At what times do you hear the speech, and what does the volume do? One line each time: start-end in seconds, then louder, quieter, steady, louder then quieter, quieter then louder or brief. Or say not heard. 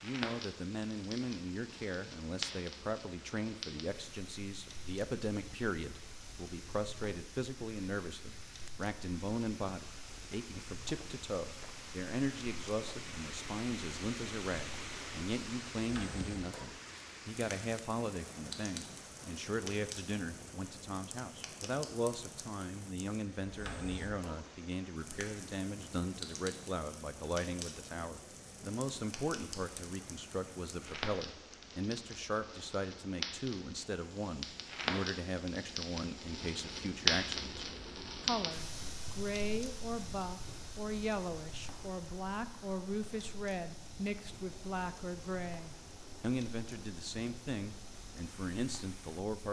0.0-49.4 steady.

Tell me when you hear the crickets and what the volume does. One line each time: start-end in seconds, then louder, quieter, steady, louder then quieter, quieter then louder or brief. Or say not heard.
not heard.